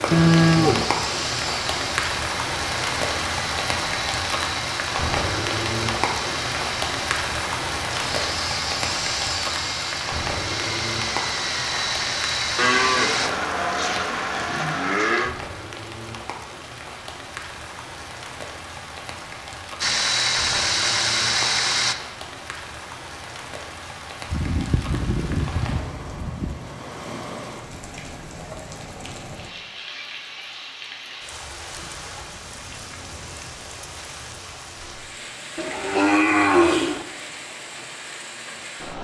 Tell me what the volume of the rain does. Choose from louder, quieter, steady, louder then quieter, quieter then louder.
quieter.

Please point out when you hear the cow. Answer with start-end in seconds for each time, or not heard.
0.1-0.8, 12.6-15.3, 24.2-26.6, 35.5-37.0.